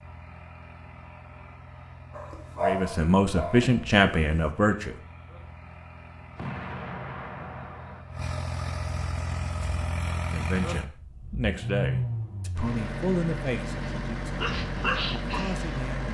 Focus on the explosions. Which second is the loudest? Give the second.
7 s.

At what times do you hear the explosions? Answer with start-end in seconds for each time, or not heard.
6.3-8.1.